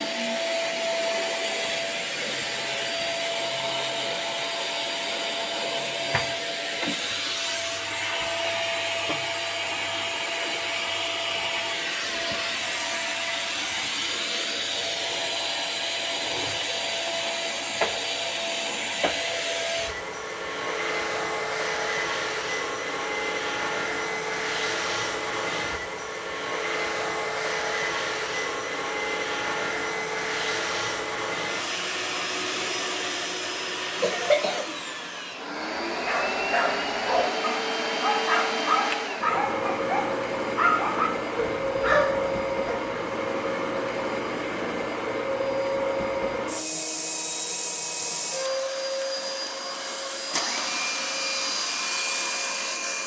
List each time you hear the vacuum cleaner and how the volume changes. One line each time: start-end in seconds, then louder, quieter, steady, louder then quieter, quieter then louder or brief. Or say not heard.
0.0-53.0 steady.